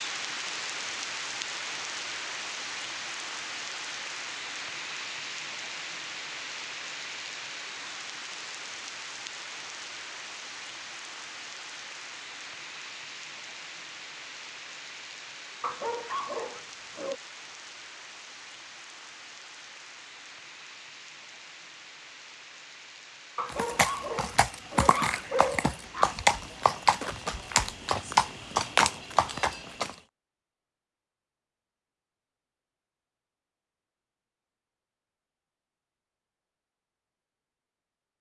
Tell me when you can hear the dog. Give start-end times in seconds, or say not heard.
15.6-17.1, 23.4-26.1.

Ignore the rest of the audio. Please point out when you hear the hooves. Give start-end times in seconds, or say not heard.
23.5-29.9.